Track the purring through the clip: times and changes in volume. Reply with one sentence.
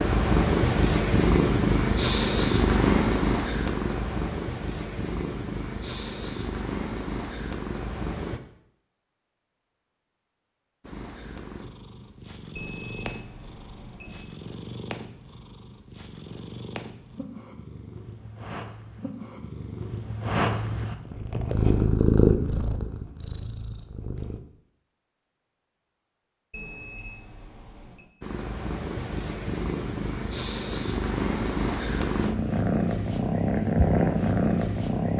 The purring can be heard from 0.0 to 8.4 s, getting quieter; from 10.8 to 24.4 s, getting louder; and from 28.2 to 35.1 s, getting louder.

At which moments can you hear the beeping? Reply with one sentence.
You can hear the beeping from 12.6 to 14.2 s and from 26.5 to 28.1 s.